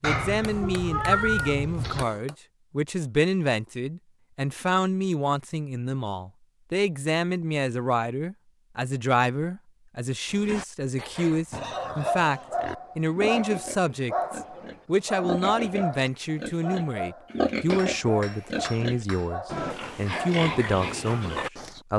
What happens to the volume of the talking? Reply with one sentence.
The loudness of the talking stays about the same.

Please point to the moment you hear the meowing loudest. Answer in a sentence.
The loudest moment of the meowing is at 1 second.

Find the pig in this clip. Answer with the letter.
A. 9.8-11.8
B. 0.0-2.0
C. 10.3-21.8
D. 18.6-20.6
C.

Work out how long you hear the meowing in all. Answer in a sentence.
You can hear the meowing for 2 seconds altogether.